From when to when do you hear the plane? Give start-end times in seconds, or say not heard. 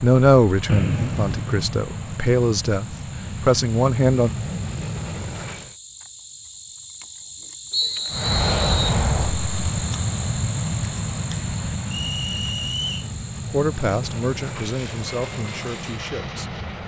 0.0-5.8, 8.1-16.8.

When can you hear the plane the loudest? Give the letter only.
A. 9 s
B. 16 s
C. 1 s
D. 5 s
A.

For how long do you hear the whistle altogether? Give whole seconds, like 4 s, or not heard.
3 s.